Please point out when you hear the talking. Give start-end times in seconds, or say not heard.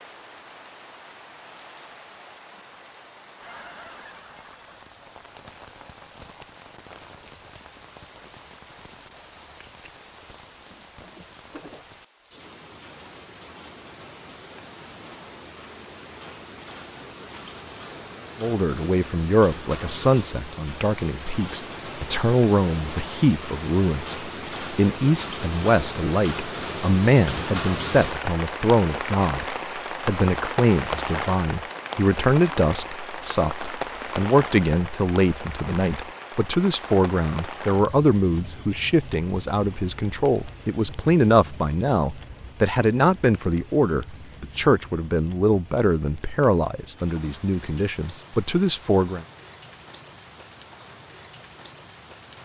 18.4-49.2.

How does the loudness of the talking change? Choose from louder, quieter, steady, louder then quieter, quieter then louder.
steady.